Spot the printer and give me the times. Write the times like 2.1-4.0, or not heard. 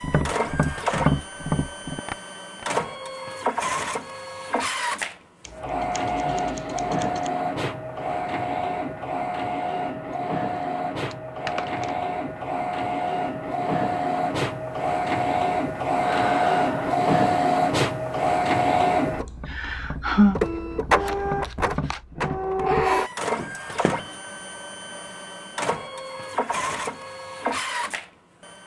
0.0-28.6.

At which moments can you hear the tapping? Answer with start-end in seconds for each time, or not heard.
0.0-2.7, 19.3-24.1.